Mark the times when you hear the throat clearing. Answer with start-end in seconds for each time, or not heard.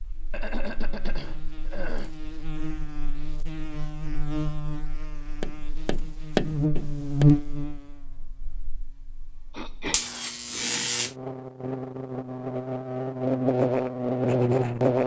0.3-2.1, 9.5-11.0.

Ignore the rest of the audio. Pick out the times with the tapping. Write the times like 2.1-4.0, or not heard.
5.4-7.2.